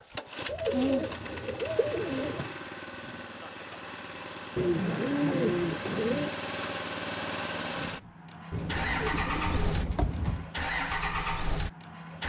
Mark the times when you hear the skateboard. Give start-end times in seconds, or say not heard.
not heard.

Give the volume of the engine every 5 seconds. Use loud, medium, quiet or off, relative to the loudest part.
medium, loud, loud.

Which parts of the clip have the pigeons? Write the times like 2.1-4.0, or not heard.
0.5-2.5, 4.5-6.3, 8.5-10.5.